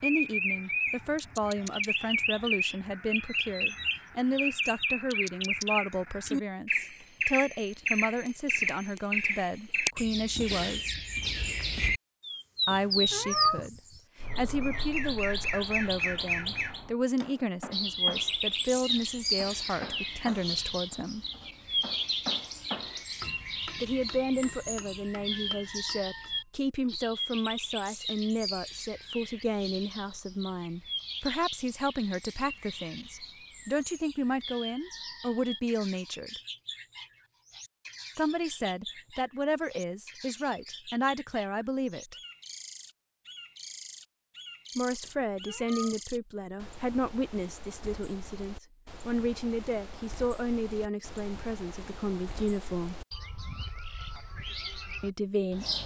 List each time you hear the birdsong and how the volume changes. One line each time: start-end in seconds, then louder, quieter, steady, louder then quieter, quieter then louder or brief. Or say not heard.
0.0-55.8 quieter.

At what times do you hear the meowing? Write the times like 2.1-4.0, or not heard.
12.7-13.7, 45.0-46.0.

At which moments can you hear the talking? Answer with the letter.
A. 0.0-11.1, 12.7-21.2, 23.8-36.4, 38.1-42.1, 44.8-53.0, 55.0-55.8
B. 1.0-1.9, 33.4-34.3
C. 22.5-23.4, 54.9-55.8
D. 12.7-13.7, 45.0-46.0
A.